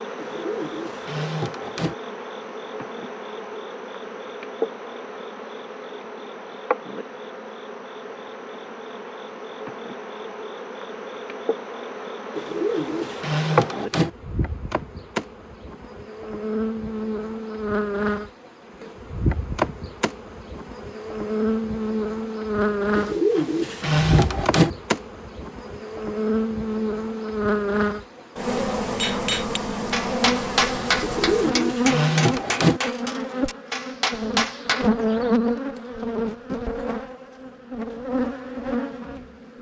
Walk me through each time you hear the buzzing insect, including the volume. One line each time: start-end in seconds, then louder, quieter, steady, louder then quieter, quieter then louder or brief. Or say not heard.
0.0-39.5 louder.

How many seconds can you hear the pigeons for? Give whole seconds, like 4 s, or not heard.
7 s.